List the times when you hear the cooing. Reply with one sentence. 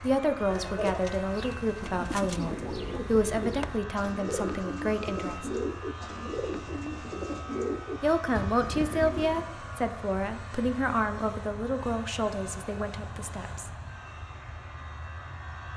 You can hear the cooing from 0.5 to 9.5 s.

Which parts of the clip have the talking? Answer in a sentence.
You can hear the talking from 0.0 to 5.7 s and from 8.0 to 13.7 s.